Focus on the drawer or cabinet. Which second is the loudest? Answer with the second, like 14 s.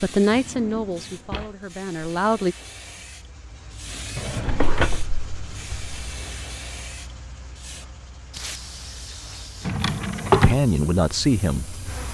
10 s.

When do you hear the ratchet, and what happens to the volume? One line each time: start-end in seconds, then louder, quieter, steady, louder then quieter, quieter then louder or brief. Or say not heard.
not heard.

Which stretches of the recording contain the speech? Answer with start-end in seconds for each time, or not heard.
0.0-2.5, 10.4-11.8.